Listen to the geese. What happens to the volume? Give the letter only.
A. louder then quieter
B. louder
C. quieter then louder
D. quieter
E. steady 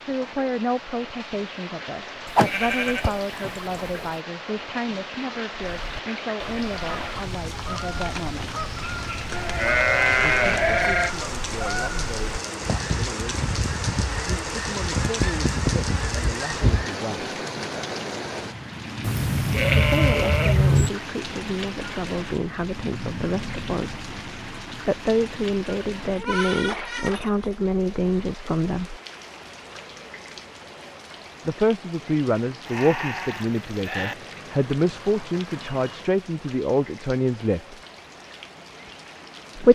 B.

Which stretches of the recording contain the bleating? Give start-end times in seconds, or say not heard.
2.2-4.1, 9.3-11.1, 19.0-20.9, 26.1-27.5, 32.6-34.1.